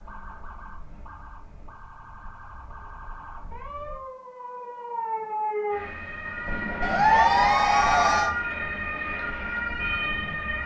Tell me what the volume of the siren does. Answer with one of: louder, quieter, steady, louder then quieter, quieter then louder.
louder.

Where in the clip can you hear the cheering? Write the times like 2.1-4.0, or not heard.
6.8-8.3.